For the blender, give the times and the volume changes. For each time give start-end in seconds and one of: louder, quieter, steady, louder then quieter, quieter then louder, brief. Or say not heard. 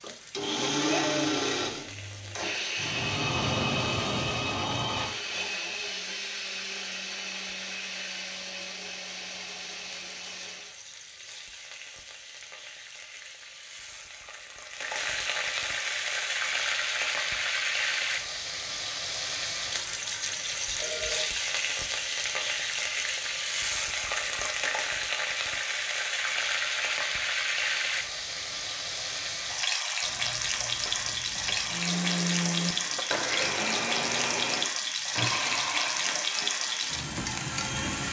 0.0-10.8 quieter
31.6-38.0 quieter.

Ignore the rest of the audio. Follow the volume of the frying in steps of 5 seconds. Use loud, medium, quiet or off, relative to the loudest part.
quiet, quiet, quiet, loud, loud, loud, loud, loud.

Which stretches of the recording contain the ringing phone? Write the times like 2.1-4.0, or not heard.
2.8-5.1, 20.6-21.3, 30.0-31.8.